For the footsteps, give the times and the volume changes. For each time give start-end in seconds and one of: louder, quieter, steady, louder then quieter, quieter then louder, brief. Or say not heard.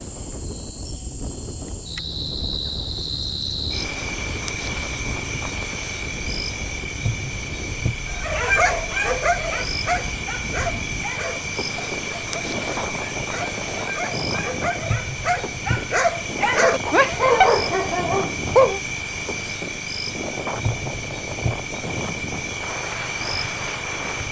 not heard.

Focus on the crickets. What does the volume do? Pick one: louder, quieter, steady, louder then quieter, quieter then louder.
steady.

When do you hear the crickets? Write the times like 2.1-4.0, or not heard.
0.0-24.2.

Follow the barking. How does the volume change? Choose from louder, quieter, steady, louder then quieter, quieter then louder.
quieter then louder.